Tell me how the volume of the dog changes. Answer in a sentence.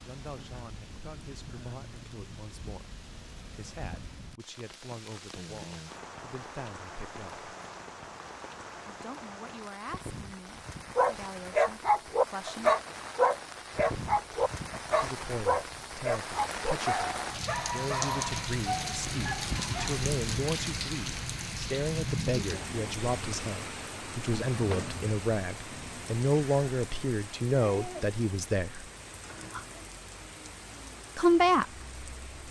The volume of the dog goes down.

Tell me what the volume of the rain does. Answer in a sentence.
The loudness of the rain goes up, then down.